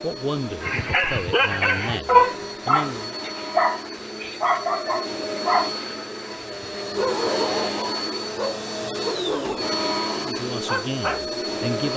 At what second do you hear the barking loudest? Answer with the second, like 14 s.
2 s.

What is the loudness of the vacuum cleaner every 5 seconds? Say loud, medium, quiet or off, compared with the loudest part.
medium, loud, loud.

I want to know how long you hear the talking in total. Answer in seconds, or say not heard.
5 s.